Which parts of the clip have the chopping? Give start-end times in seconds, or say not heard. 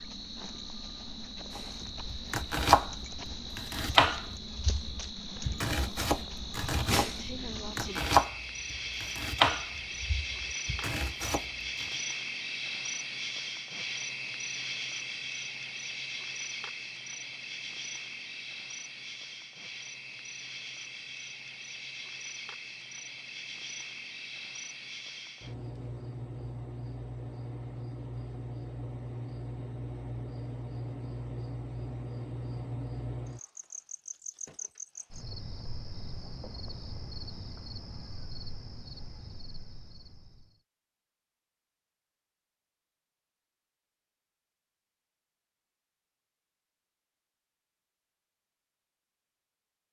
1.6-11.9.